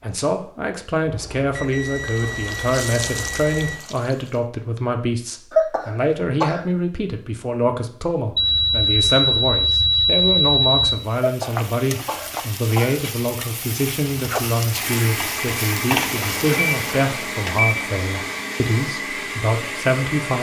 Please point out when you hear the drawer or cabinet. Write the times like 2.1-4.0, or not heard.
not heard.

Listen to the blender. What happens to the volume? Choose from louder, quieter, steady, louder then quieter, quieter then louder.
steady.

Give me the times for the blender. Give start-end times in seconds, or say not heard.
14.6-20.3.